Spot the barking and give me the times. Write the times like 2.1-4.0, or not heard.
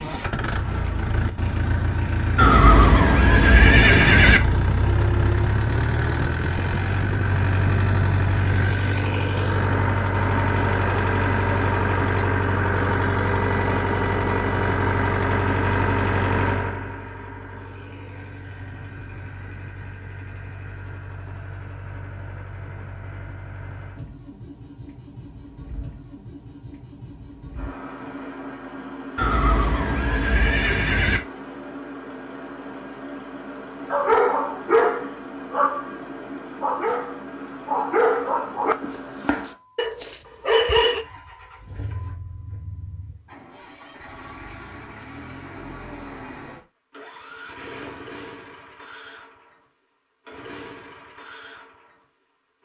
33.9-41.0.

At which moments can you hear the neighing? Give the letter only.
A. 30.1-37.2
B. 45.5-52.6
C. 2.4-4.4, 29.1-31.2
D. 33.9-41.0
C.